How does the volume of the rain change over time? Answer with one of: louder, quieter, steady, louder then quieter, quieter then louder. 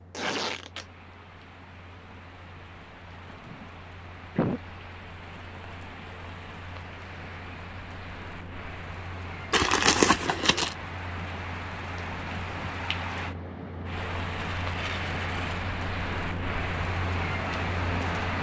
louder.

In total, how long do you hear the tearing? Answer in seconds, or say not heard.
3 s.